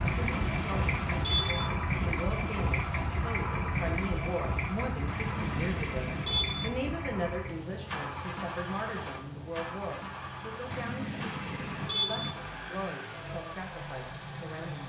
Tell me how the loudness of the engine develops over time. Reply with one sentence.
The loudness of the engine goes down.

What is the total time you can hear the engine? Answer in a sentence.
You can hear the engine for 15 seconds altogether.